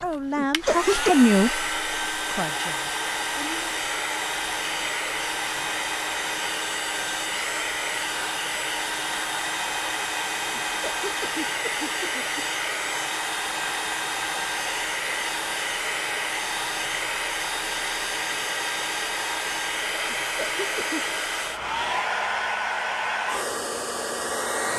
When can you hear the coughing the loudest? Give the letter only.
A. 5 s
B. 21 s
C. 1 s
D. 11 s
C.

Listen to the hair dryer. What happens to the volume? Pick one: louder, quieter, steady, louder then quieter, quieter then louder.
steady.